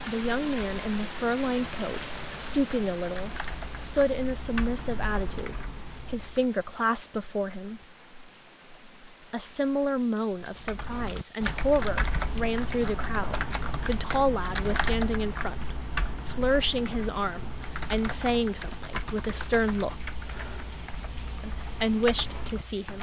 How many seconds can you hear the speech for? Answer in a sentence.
The speech can be heard for 20 seconds in total.